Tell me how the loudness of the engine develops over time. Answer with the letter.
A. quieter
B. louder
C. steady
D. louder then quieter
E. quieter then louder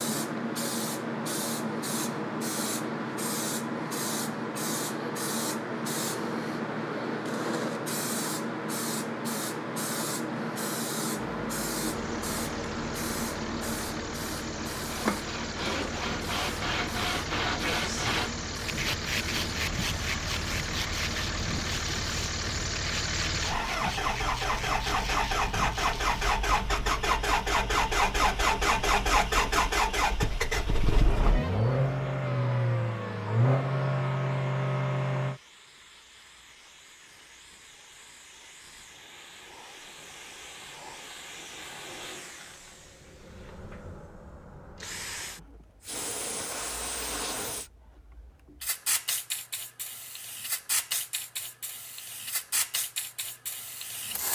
B.